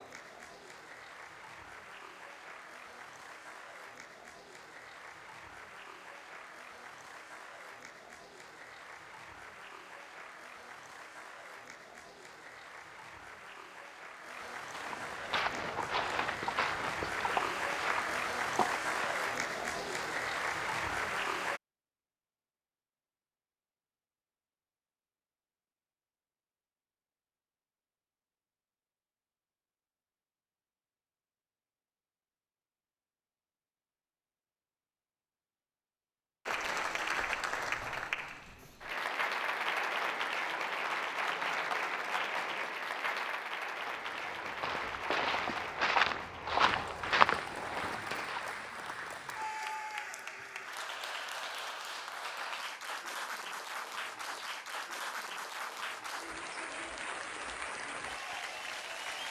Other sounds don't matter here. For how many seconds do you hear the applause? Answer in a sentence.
You can hear the applause for 44 seconds altogether.